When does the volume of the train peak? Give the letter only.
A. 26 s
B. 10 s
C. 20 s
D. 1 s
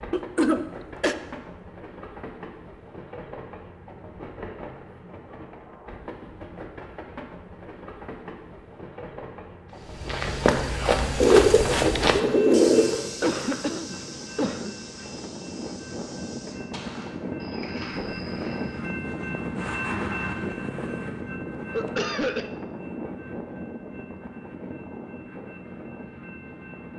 C.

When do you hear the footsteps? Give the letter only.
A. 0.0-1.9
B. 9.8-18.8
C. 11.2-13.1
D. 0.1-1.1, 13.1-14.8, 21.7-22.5
B.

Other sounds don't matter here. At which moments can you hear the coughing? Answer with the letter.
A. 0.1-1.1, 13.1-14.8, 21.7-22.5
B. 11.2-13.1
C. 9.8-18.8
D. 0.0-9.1
A.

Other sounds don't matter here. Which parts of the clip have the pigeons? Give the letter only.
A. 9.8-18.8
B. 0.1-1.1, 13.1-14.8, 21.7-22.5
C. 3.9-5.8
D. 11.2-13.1
D.